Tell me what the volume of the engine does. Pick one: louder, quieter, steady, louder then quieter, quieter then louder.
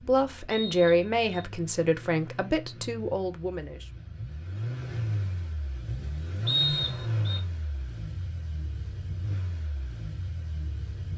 louder then quieter.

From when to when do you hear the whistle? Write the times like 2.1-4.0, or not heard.
0.5-1.4, 6.5-7.4.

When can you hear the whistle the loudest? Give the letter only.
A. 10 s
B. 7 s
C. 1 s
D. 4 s
B.